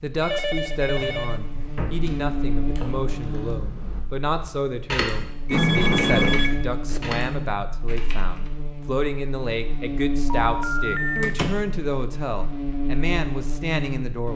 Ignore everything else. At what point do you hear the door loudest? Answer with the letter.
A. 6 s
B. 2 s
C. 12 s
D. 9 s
A.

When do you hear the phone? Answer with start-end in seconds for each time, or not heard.
0.2-1.4, 5.5-7.0, 10.4-11.3.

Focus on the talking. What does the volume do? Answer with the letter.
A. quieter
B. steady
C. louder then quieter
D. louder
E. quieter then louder
B.